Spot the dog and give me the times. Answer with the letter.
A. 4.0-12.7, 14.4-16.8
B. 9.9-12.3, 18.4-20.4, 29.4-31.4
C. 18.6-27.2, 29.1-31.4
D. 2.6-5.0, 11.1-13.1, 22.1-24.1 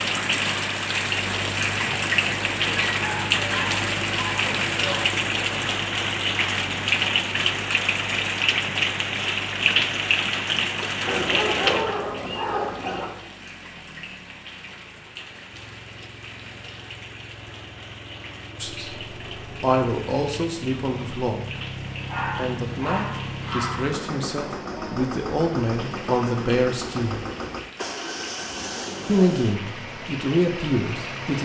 D.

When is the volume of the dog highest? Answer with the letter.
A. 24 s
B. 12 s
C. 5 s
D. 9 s
B.